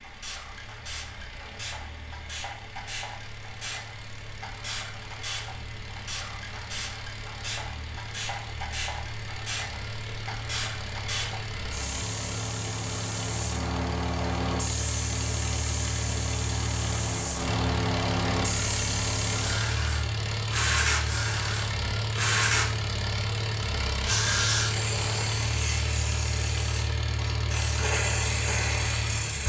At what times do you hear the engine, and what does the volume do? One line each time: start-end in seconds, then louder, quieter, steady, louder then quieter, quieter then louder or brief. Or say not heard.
0.0-29.4 louder.